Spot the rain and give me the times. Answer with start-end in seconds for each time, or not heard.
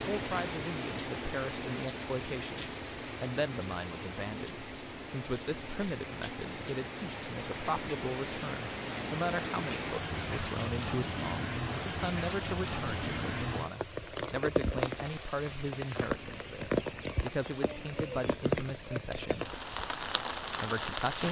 0.0-21.2.